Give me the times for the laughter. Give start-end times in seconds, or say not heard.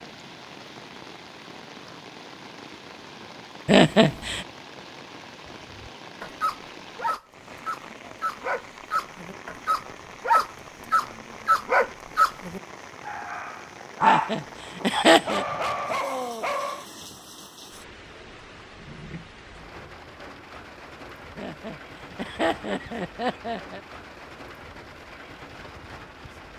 3.6-4.5, 14.0-15.4, 21.4-23.8.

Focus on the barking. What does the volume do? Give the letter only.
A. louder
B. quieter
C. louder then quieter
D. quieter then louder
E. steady
C.